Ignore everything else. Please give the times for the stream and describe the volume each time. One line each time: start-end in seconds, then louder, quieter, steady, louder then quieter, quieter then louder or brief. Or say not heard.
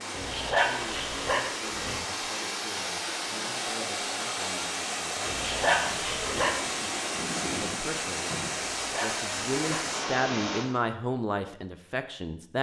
0.0-10.7 steady.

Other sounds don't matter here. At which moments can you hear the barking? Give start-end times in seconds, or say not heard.
0.1-2.0, 5.2-6.6, 8.6-9.9.